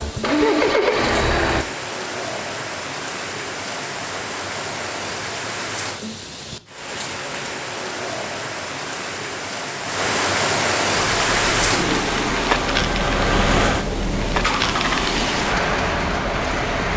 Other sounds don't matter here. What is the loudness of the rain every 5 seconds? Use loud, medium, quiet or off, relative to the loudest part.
medium, medium, loud, loud.